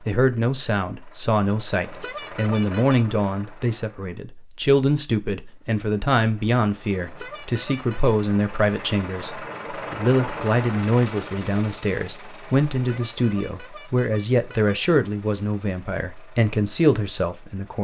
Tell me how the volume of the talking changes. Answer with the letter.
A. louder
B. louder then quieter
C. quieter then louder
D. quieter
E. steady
E.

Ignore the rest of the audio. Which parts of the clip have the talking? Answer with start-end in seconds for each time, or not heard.
0.0-17.8.